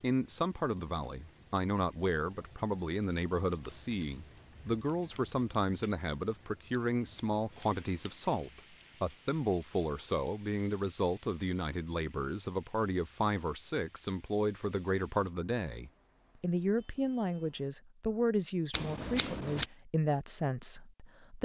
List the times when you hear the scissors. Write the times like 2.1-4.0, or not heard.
6.7-8.2, 18.7-19.6.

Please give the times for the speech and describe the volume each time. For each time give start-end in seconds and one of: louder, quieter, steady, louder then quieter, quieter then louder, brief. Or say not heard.
0.0-21.4 steady.